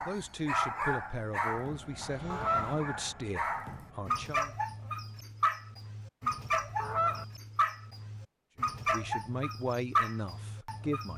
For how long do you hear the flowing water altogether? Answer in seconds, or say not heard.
not heard.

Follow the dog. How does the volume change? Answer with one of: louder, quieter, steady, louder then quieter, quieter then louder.
steady.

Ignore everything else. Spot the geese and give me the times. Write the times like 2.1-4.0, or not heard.
2.3-2.8, 6.8-7.2.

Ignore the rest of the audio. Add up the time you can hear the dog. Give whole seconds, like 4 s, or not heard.
11 s.